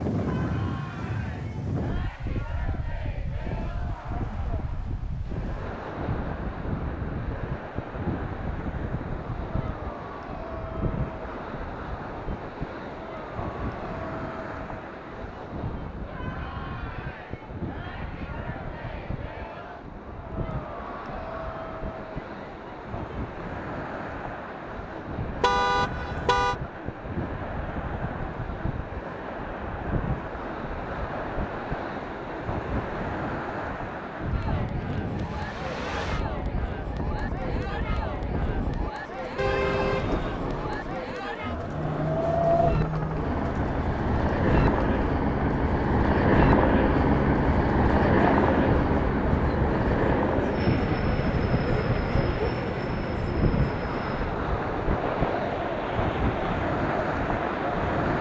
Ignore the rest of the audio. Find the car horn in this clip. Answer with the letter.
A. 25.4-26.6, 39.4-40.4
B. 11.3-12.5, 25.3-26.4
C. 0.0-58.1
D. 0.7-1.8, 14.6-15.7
A.